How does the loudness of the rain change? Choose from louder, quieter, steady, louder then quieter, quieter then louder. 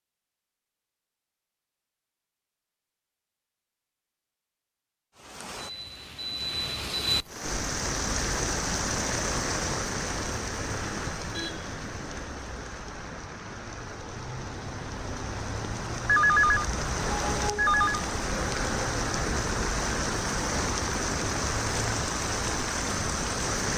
quieter then louder.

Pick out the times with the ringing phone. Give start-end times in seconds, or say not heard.
16.1-18.1.